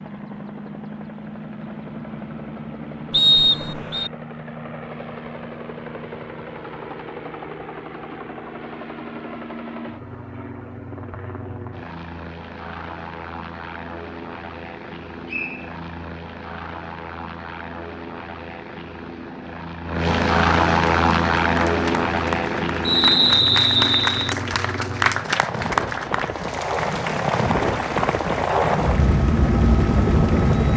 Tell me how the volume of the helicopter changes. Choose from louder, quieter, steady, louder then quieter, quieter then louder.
louder.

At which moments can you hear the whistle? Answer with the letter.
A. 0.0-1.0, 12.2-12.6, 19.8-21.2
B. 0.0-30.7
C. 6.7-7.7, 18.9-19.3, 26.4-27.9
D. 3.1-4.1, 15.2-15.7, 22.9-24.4
D.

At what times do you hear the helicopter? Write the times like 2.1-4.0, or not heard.
0.0-30.7.